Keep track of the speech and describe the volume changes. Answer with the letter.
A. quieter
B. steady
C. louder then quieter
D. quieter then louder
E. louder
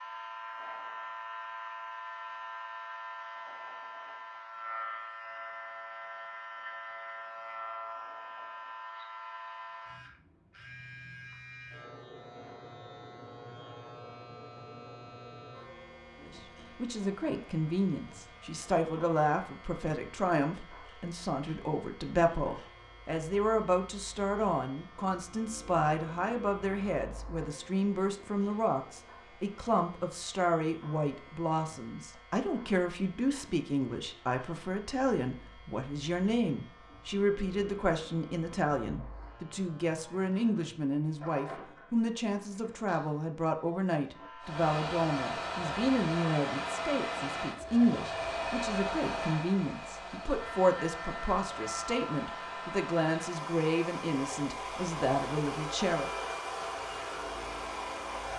B.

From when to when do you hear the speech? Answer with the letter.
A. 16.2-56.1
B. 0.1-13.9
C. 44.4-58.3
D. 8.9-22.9
A.